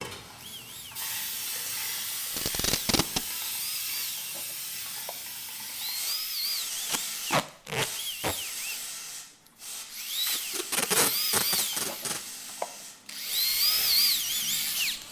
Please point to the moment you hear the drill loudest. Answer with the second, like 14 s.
14 s.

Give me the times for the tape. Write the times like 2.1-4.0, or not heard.
2.3-3.2, 6.8-8.3, 10.2-12.2.